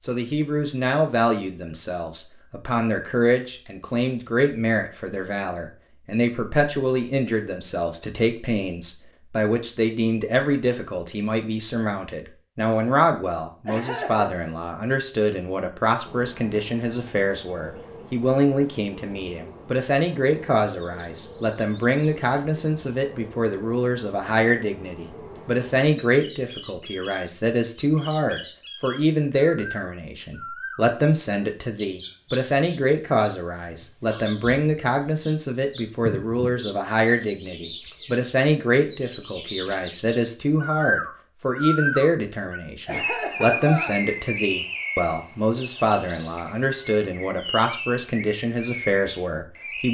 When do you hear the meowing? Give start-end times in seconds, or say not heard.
not heard.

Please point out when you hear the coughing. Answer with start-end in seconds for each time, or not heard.
13.7-14.3, 42.9-44.0.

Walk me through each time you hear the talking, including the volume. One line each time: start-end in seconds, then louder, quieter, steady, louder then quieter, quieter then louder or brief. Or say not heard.
0.0-49.8 steady.